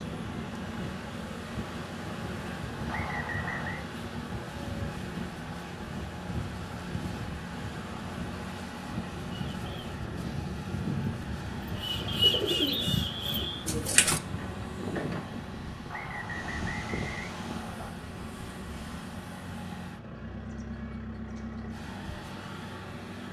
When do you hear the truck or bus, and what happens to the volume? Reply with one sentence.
You can hear the truck or bus from 0.0 to 23.2 s, at a steady volume.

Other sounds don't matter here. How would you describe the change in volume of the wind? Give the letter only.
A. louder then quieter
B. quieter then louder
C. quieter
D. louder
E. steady
E.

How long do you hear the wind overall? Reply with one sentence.
You can hear the wind for 18 seconds altogether.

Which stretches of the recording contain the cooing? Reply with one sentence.
You can hear the cooing from 9.3 to 14.2 s.